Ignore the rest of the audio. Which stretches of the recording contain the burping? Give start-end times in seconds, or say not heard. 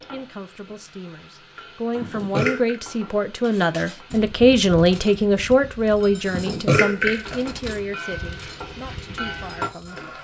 1.9-2.8, 6.2-7.8.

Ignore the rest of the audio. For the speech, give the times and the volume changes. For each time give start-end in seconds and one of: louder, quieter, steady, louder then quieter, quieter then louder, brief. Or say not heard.
0.0-10.1 louder then quieter.